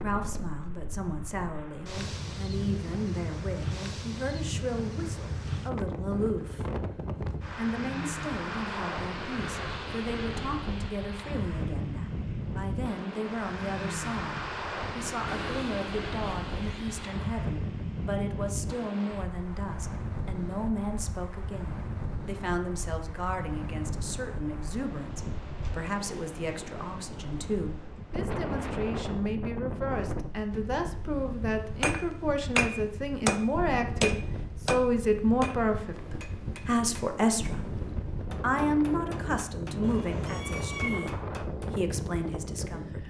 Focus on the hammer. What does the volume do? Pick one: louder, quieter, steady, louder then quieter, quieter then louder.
quieter.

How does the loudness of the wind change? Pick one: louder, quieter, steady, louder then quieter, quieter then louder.
steady.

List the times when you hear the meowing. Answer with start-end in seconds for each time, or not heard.
15.2-17.1, 39.8-41.1.